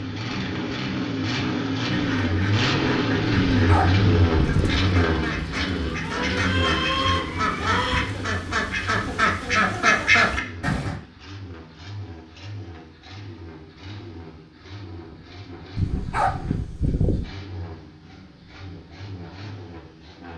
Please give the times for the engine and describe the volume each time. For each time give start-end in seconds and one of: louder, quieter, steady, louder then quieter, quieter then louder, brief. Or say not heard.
0.0-20.3 quieter.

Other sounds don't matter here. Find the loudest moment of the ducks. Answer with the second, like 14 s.
10 s.